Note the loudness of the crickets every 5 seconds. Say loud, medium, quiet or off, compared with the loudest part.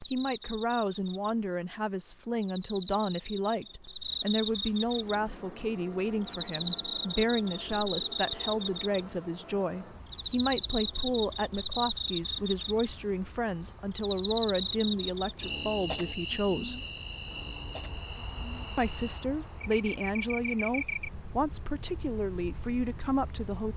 medium, loud, loud, medium, loud.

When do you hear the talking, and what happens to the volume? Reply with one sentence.
You can hear the talking from 0.1 to 16.8 s, at a steady volume; and from 18.8 to 23.7 s, at a steady volume.